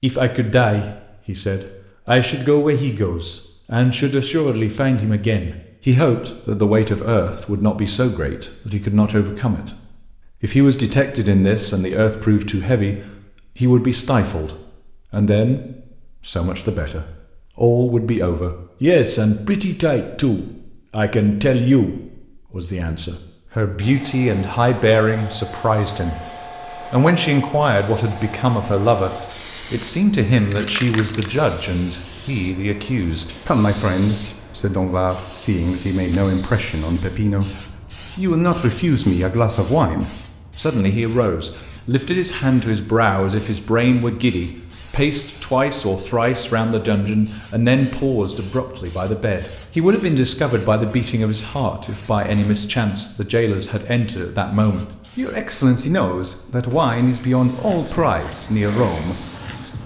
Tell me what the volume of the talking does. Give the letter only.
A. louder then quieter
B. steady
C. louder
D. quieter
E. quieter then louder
B.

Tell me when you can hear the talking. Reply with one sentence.
The talking can be heard from 0.0 to 26.2 s, from 26.9 to 37.5 s and from 38.1 to 59.2 s.